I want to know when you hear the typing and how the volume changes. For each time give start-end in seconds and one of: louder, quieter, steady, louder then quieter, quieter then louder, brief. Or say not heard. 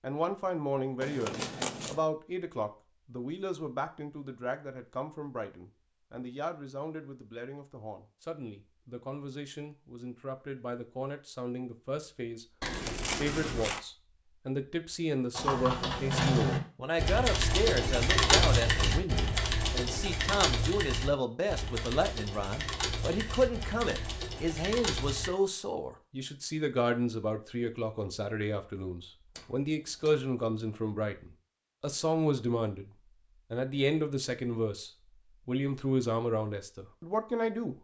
15.3-25.3 quieter.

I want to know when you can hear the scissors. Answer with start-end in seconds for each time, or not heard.
1.0-2.0, 12.6-13.8, 29.4-30.1.